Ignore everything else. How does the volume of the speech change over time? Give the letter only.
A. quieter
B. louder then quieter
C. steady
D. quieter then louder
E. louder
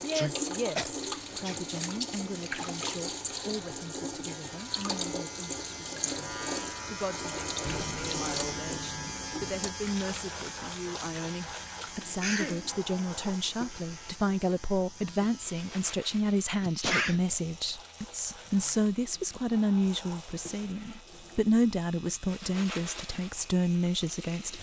E.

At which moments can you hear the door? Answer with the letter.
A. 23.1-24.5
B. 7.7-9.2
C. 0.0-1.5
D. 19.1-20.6
B.